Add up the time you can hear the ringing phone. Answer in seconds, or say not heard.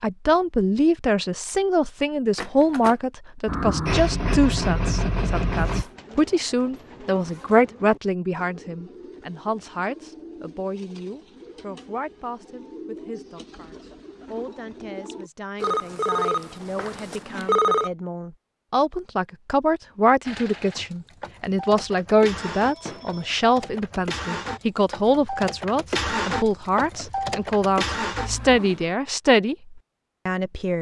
4 s.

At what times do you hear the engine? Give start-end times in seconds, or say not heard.
3.5-5.8, 20.2-28.6.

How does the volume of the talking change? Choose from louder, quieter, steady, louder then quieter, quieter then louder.
quieter then louder.